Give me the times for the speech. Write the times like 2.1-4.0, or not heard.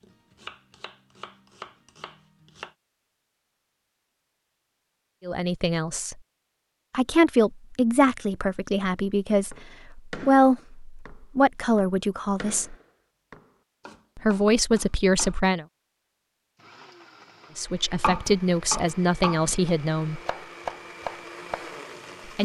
5.2-6.2, 6.9-12.8, 14.2-15.7, 17.6-20.2.